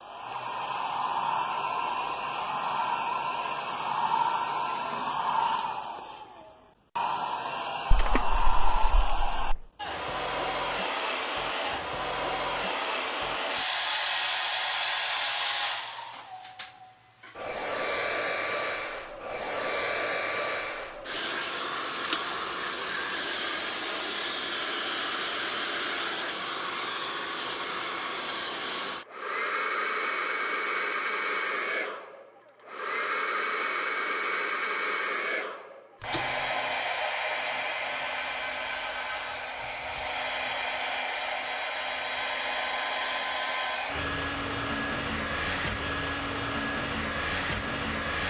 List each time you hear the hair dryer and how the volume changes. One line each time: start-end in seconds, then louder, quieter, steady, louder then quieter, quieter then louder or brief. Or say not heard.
0.0-48.2 steady.